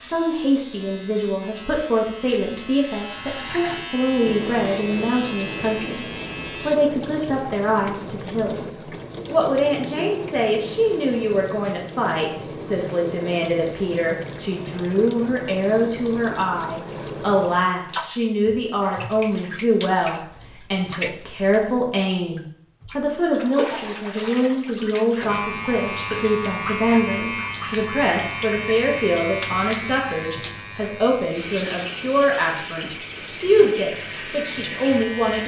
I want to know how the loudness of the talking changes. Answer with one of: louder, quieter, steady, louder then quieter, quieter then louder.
steady.